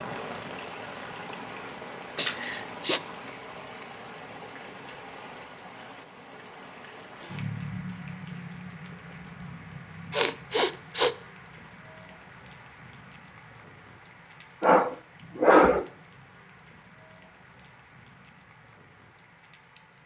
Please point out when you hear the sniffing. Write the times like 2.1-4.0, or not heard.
2.1-3.0, 10.1-11.1, 14.6-15.8.